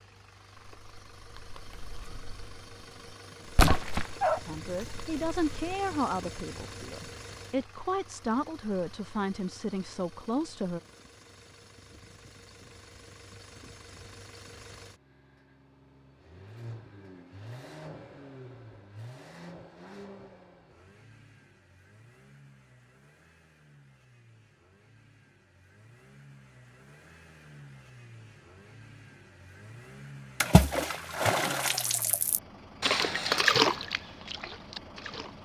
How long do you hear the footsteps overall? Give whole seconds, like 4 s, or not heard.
not heard.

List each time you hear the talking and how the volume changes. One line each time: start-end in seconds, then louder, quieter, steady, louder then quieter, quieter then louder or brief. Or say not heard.
4.5-10.8 steady.